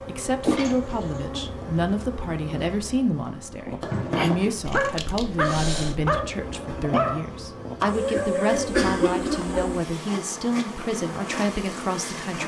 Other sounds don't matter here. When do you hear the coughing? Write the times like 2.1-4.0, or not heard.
0.4-1.2, 4.7-6.0, 8.7-9.7.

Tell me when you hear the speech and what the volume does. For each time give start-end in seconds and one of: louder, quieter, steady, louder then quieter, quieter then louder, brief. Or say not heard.
0.1-12.4 steady.